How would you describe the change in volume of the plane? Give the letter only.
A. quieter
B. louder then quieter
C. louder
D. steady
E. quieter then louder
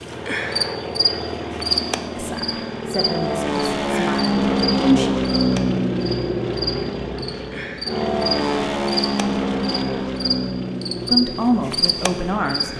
B.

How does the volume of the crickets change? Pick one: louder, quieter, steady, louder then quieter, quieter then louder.
quieter then louder.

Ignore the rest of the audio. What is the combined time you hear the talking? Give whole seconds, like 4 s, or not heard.
5 s.